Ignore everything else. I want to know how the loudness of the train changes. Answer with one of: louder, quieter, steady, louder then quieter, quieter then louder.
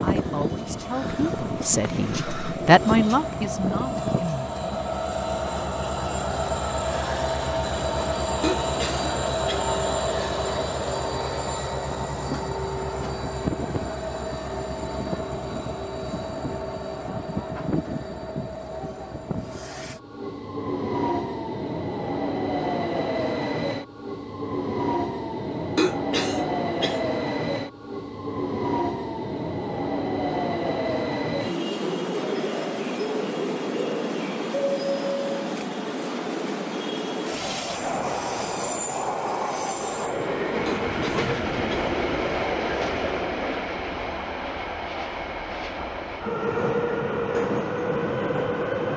steady.